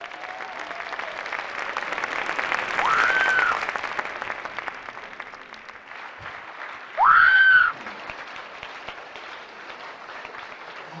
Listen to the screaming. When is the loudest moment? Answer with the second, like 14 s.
7 s.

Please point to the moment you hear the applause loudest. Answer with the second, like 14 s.
3 s.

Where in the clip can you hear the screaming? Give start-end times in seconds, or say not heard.
2.8-3.6, 7.0-7.8.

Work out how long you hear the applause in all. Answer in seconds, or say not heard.
11 s.